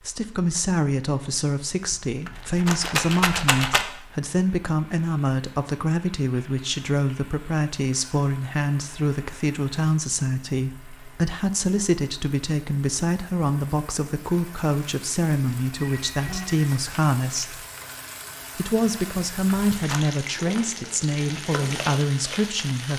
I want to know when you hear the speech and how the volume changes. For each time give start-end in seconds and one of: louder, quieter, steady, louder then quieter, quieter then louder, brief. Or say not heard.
0.0-17.6 steady
18.6-22.9 steady.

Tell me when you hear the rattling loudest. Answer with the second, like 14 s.
3 s.